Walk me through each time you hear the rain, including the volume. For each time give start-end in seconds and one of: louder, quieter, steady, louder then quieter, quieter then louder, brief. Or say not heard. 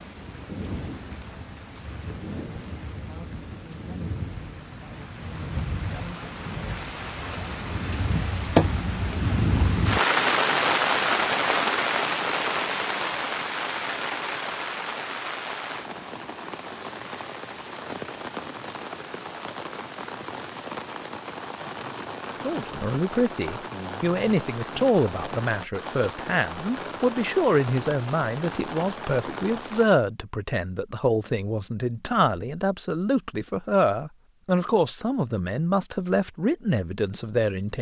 0.0-30.1 louder then quieter.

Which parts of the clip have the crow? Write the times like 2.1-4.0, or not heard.
not heard.